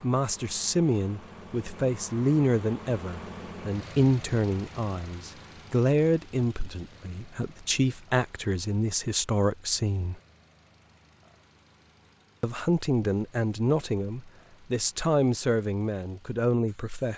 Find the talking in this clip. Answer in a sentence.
You can hear the talking from 0.0 to 10.2 s and from 12.4 to 17.1 s.